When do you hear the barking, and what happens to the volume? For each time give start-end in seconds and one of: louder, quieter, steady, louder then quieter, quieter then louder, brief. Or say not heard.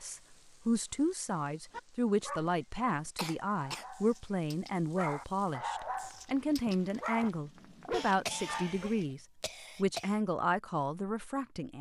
1.7-8.9 quieter then louder.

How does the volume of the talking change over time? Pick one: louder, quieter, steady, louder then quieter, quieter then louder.
steady.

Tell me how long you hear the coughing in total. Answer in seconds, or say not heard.
3 s.